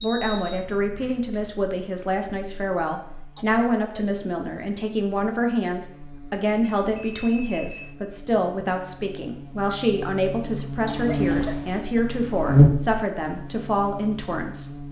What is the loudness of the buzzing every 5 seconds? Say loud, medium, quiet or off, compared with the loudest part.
quiet, quiet, loud.